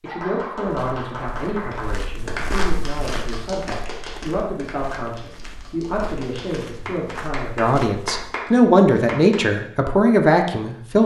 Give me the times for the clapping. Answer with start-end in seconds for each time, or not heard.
0.1-9.4.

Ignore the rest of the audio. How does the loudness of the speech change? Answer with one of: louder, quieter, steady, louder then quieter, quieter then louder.
louder.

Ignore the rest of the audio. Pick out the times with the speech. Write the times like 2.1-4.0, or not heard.
0.0-11.0.